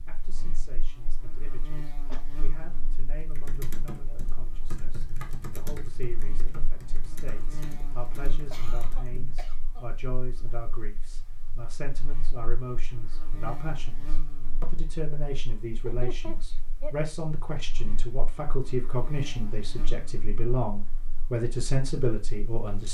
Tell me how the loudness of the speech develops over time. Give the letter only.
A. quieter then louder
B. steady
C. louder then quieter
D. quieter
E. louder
E.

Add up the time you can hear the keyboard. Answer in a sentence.
The keyboard can be heard for 6 seconds in total.